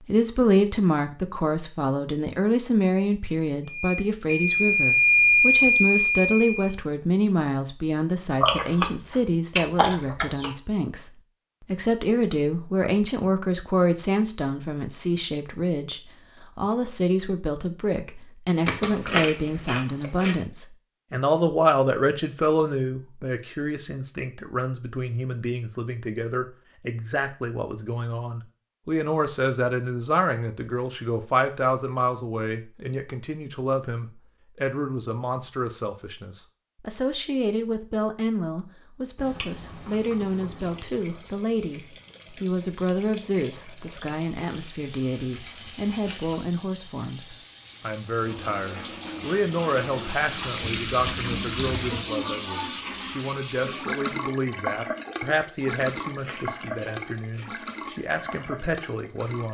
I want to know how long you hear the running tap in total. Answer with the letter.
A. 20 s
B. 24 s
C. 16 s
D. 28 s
A.